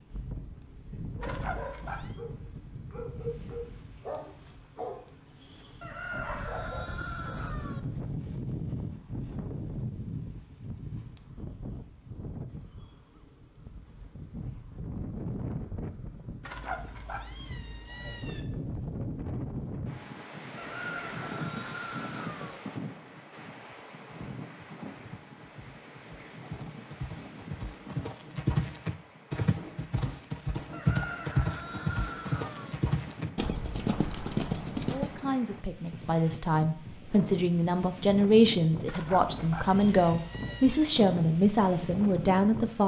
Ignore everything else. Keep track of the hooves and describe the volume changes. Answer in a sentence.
The volume of the hooves goes up.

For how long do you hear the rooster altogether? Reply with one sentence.
You can hear the rooster for 6 seconds altogether.